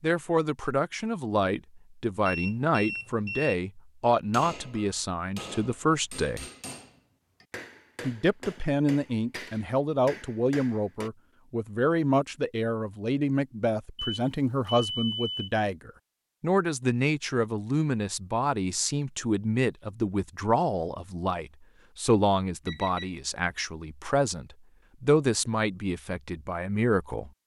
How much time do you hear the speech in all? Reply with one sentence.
You can hear the speech for 26 seconds altogether.